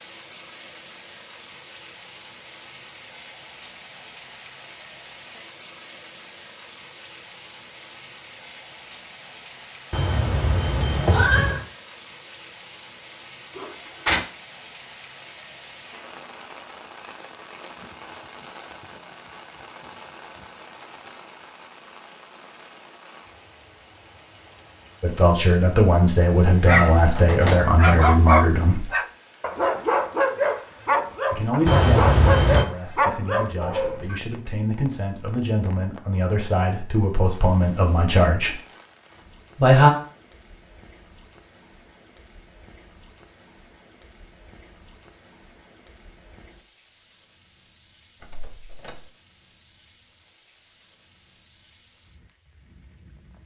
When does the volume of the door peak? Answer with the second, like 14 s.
14 s.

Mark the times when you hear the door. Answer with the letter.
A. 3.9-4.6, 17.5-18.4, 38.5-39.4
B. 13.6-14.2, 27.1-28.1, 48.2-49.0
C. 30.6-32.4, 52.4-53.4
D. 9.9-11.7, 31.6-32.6
B.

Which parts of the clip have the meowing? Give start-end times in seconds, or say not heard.
9.9-11.7, 31.6-32.6.